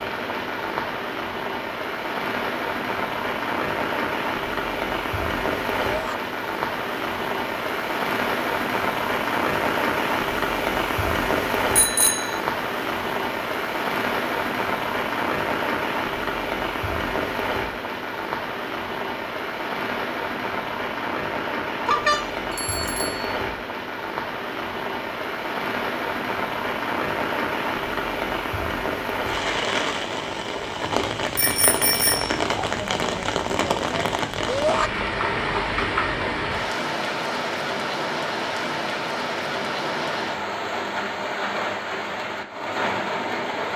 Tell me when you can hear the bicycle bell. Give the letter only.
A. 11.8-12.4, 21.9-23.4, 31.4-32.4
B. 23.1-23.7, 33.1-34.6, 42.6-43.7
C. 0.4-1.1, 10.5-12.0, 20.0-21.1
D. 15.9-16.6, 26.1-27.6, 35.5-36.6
A.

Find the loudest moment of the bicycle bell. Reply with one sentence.
The volume of the bicycle bell peaks at 22 seconds.